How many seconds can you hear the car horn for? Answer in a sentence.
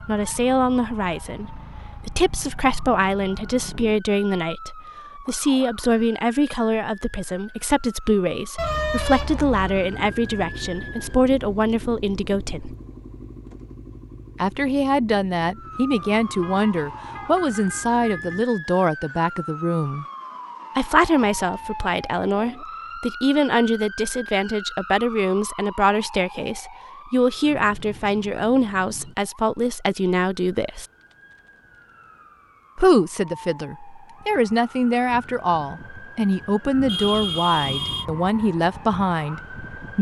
The car horn can be heard for 5 seconds in total.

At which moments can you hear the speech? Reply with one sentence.
The speech can be heard from 0.1 to 12.8 s, from 14.4 to 20.1 s, from 20.8 to 30.9 s and from 32.8 to 39.9 s.